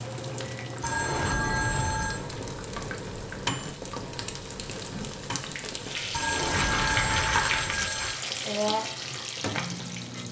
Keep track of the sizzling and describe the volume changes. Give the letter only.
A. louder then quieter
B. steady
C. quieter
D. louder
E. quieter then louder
D.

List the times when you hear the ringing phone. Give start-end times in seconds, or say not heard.
0.8-2.3, 6.1-8.2.